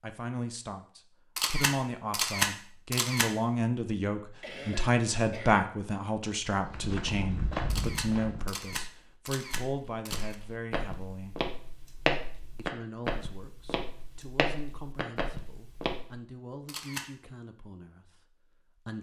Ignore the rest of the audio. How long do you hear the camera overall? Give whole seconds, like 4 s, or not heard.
5 s.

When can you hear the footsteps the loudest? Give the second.
12 s.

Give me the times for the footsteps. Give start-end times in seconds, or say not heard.
6.5-16.2.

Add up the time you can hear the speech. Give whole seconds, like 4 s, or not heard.
18 s.